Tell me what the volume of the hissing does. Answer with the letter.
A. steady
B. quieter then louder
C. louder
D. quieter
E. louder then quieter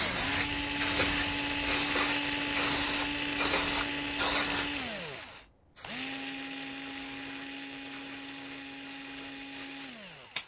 D.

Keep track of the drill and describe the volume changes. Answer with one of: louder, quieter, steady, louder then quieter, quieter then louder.
quieter.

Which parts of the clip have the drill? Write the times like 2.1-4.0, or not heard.
0.0-10.4.